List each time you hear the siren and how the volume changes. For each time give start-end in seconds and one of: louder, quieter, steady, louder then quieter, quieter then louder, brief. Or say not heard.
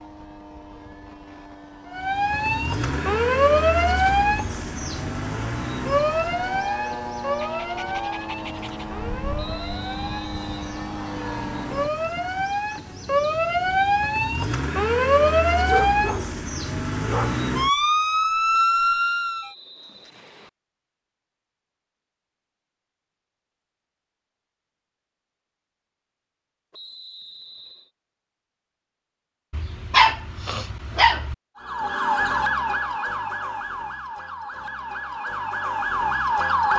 1.9-19.5 quieter then louder
31.6-36.7 quieter then louder.